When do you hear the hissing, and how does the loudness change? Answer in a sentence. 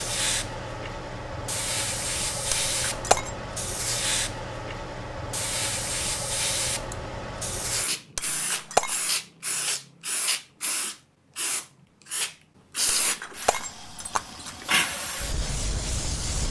You can hear the hissing from 0.0 to 16.4 s, at a steady volume.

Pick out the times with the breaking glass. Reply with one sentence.
You can hear the breaking glass from 2.5 to 3.3 s, from 8.2 to 9.0 s and from 13.0 to 14.7 s.